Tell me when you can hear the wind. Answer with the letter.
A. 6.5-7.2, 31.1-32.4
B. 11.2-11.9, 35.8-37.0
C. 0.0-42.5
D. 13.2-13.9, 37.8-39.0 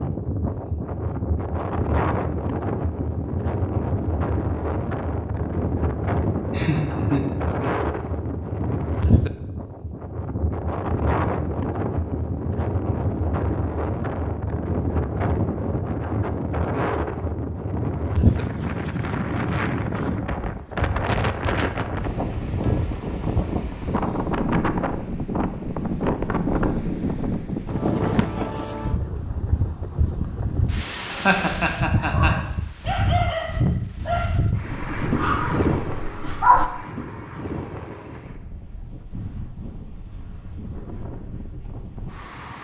C.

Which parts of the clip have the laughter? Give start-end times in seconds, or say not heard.
6.5-7.2, 31.1-32.4.